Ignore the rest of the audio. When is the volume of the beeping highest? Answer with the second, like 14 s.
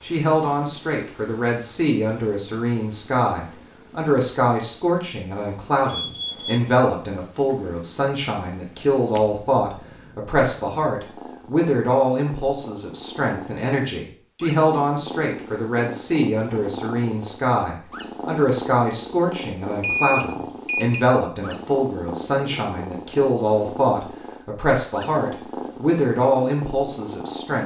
20 s.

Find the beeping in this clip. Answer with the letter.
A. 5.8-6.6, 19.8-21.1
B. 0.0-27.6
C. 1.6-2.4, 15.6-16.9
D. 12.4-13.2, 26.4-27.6
A.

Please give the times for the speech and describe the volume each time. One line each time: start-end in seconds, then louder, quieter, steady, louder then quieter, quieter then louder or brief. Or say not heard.
0.0-27.6 steady.